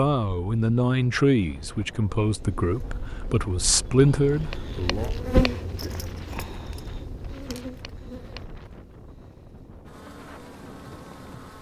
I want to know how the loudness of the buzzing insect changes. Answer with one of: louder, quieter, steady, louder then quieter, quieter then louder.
louder then quieter.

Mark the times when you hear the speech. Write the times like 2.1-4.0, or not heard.
0.0-5.1.